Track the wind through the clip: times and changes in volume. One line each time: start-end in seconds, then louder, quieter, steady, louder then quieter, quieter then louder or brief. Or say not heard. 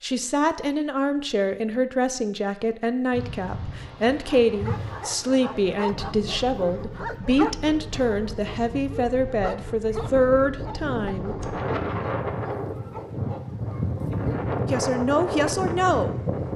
3.1-16.5 louder.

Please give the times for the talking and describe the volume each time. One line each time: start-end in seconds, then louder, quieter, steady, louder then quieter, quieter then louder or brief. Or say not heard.
0.0-11.4 steady
14.7-16.2 brief.